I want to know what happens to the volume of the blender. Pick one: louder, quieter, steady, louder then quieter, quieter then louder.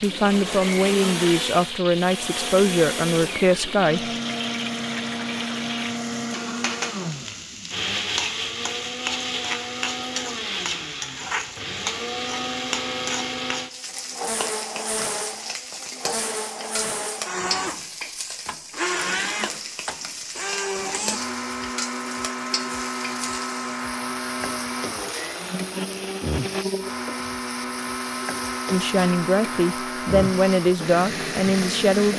steady.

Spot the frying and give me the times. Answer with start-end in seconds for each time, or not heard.
0.0-32.1.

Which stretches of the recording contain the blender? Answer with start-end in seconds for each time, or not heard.
0.0-32.1.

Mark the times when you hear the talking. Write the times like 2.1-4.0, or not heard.
0.0-4.0, 28.7-32.1.